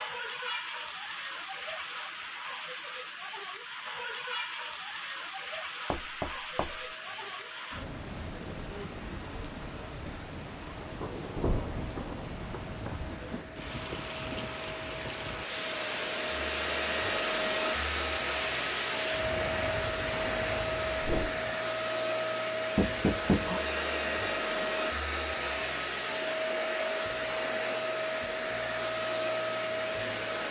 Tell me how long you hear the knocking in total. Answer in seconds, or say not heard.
3 s.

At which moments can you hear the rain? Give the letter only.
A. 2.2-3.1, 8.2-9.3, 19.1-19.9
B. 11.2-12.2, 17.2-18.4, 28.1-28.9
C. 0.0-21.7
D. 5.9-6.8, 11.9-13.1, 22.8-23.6
C.